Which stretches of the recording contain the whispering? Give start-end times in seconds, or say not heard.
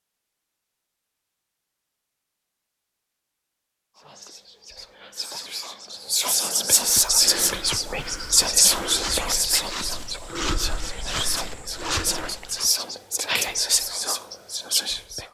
4.0-15.2.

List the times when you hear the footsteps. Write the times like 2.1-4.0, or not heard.
6.8-12.7.